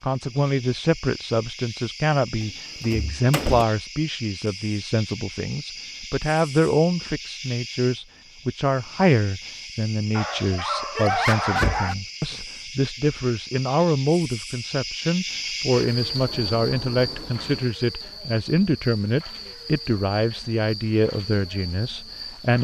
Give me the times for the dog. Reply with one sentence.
The dog can be heard from 10.2 to 11.9 s.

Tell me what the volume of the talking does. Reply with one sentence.
The volume of the talking stays about the same.